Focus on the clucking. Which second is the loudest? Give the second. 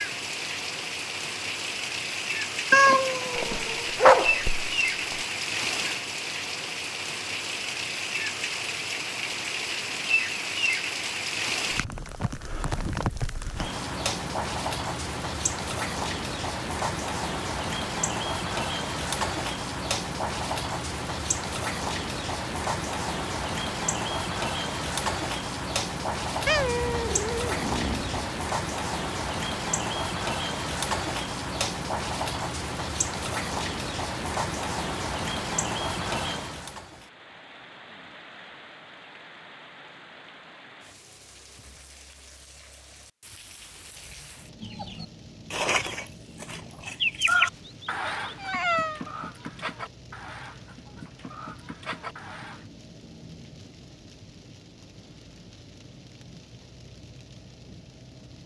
47 s.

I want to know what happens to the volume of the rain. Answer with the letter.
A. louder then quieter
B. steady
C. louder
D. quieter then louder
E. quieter
E.